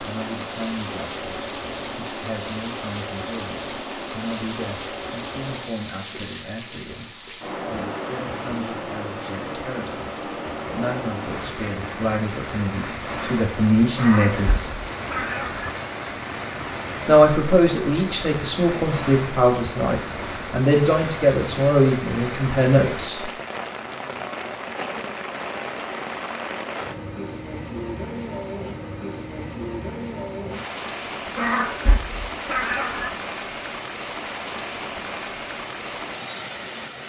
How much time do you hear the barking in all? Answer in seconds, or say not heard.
not heard.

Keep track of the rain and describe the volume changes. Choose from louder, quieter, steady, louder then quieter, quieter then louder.
steady.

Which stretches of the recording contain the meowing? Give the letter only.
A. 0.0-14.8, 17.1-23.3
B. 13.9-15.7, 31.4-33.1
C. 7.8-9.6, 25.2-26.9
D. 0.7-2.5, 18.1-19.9
B.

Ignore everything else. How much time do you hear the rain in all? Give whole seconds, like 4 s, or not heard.
37 s.